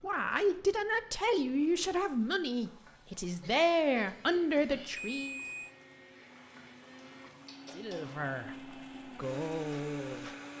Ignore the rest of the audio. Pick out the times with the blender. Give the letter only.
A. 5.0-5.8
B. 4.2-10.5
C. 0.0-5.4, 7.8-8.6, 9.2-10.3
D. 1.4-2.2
B.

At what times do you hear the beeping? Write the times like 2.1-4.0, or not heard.
5.0-5.8.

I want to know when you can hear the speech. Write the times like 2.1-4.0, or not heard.
0.0-5.4, 7.8-8.6, 9.2-10.3.